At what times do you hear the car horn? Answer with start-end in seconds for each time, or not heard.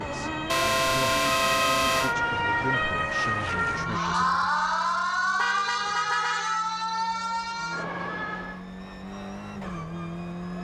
0.5-2.1, 5.3-6.8.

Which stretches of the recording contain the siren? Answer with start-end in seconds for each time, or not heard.
0.0-8.7.